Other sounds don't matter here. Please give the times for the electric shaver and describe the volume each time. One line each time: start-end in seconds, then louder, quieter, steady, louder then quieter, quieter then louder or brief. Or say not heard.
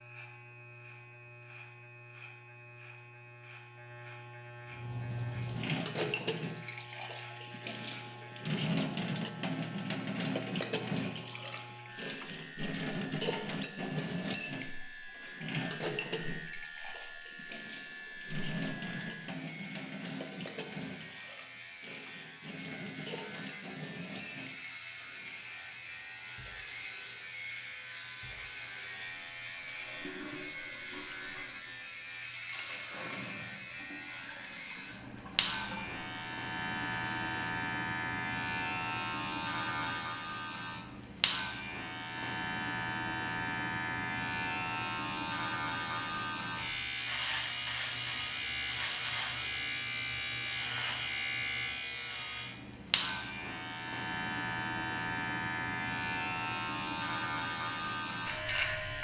0.0-58.9 louder.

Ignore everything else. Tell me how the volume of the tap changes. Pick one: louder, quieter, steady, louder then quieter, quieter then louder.
quieter.